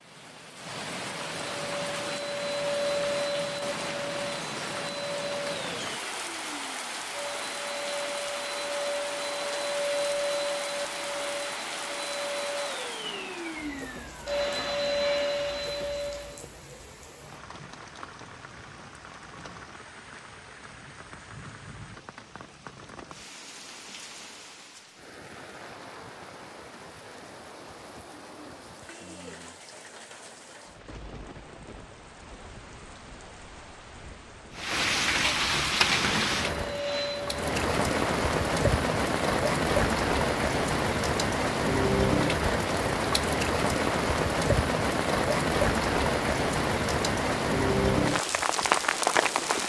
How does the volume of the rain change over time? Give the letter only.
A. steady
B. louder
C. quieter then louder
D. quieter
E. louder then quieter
C.